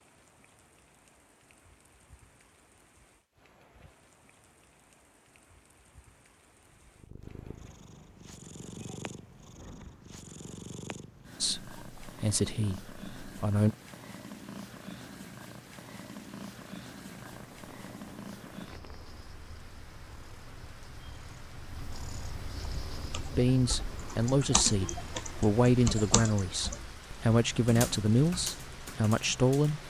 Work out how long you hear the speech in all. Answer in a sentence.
You can hear the speech for 9 seconds altogether.